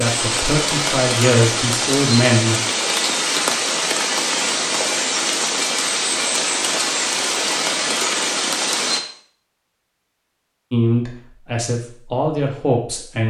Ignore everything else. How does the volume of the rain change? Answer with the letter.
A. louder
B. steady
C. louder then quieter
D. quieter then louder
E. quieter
B.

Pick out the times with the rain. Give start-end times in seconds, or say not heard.
0.0-9.0.